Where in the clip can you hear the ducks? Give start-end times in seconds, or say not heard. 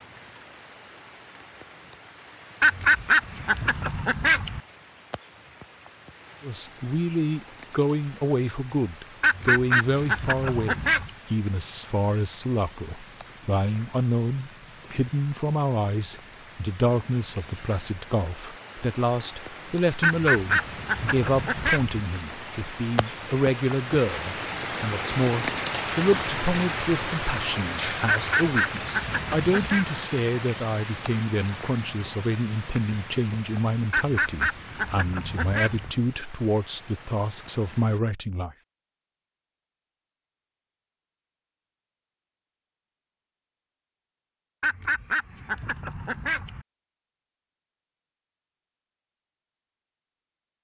2.6-4.6, 9.2-11.1, 20.0-22.0, 28.1-29.9, 33.9-35.9, 44.6-46.6.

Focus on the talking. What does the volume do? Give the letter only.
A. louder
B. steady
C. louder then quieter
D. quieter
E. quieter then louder
B.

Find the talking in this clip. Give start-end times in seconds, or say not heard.
6.4-38.5.